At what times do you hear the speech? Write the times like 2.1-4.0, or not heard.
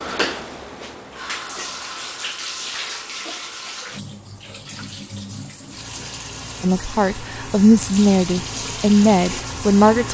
6.6-10.0.